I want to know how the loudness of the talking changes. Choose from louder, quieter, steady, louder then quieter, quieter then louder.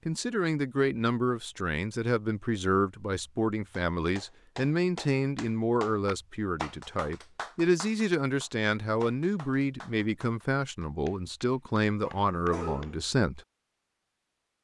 steady.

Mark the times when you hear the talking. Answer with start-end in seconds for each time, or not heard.
0.1-13.4.